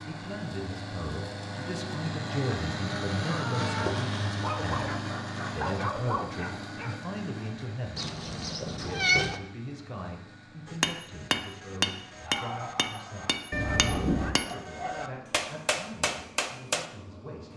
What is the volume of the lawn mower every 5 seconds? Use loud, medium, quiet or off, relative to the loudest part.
loud, medium, quiet, quiet.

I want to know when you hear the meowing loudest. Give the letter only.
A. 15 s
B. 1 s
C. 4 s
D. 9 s
D.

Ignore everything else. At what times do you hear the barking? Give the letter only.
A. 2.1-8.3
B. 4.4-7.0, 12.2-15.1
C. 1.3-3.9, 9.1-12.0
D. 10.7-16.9
B.